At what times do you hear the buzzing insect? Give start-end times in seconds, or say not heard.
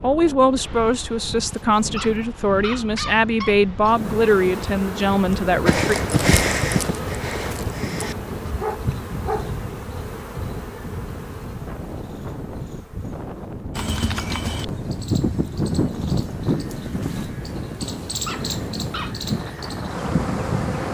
3.8-20.9.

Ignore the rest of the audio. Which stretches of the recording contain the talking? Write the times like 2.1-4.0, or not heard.
0.0-6.0.